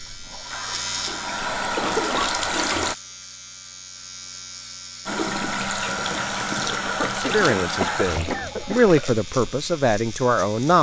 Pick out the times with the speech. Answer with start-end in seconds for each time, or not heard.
7.2-10.7.